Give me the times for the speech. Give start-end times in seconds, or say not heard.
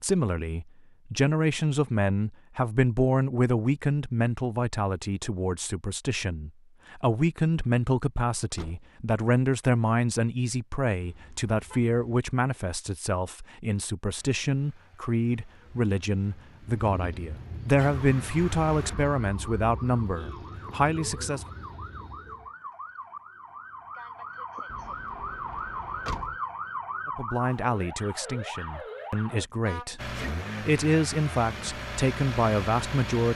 0.0-21.4, 27.1-33.3.